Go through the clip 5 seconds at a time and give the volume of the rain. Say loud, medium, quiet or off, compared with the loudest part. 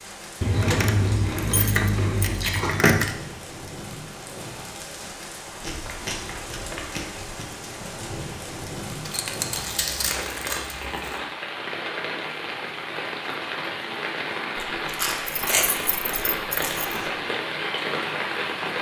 medium, medium, loud, loud.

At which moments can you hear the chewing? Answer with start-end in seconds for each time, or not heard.
0.5-2.8, 5.6-7.5, 9.5-11.2, 14.8-17.1.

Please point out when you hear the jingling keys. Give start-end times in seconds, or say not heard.
0.4-3.1, 9.1-10.8, 15.2-17.0.